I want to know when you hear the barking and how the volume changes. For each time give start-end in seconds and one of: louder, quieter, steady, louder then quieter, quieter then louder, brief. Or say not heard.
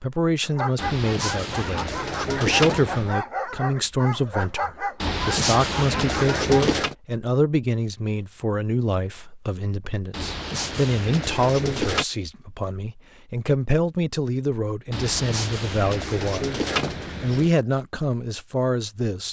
0.4-6.8 steady.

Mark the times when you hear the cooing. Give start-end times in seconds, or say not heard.
0.8-3.1, 5.0-7.0, 10.1-12.1, 14.9-17.5.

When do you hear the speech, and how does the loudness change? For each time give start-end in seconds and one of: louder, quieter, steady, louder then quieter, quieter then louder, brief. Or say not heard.
0.0-16.6 steady
17.2-19.2 brief.